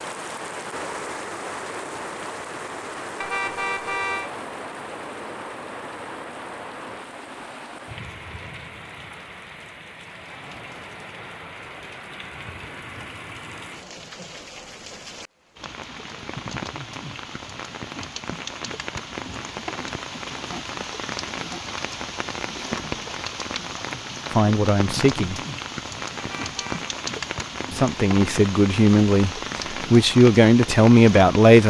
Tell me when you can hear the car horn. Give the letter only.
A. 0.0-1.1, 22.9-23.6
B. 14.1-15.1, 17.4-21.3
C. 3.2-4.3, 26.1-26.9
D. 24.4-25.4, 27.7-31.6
C.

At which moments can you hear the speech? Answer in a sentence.
The speech can be heard from 24.4 to 25.4 s and from 27.7 to 31.6 s.